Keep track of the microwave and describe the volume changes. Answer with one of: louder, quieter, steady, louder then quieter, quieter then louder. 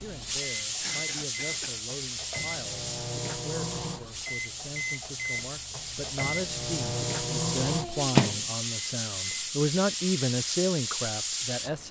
louder.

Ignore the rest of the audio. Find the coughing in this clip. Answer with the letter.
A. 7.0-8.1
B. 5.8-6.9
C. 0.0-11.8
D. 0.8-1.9
D.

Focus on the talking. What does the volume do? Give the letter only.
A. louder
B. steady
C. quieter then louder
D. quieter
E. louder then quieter
A.